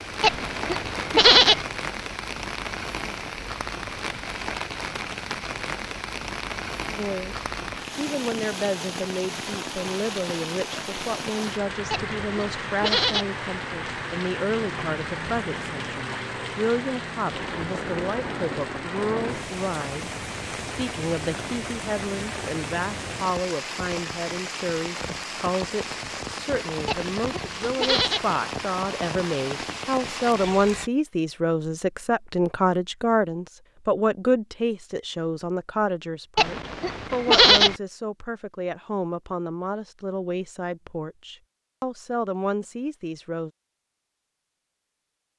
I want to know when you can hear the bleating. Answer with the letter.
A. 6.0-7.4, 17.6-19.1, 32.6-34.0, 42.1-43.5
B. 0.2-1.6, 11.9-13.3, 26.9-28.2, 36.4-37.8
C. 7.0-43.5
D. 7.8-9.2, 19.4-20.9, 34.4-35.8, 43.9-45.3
B.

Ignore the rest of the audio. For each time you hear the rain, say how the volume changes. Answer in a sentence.
You can hear the rain from 0.0 to 30.9 s, at a steady volume.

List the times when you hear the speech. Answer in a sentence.
The speech can be heard from 7.0 to 43.5 s.